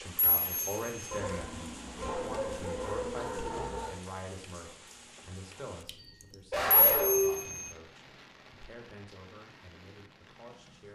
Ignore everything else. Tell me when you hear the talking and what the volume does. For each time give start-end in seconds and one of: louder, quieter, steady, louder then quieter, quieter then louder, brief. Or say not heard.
0.0-10.9 quieter.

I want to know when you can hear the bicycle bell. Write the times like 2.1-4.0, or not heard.
0.3-1.2, 6.8-7.7.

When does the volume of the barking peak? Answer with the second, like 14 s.
7 s.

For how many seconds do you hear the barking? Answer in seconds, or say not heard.
5 s.